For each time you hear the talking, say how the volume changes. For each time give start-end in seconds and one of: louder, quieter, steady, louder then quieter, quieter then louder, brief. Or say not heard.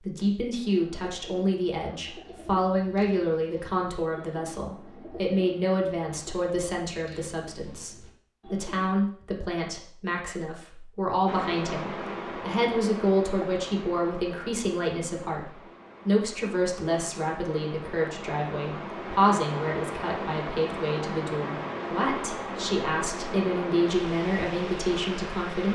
0.0-25.6 steady.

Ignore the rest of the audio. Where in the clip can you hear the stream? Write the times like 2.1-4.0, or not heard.
11.2-25.6.